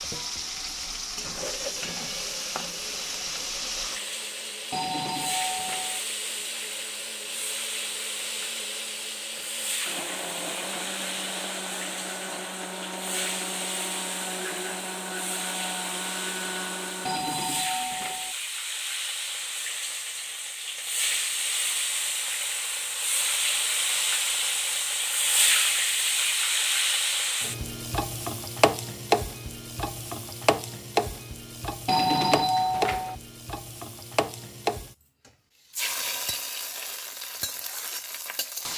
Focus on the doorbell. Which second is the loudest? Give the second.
32 s.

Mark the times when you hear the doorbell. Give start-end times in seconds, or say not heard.
4.7-6.0, 17.1-18.4, 31.9-33.1.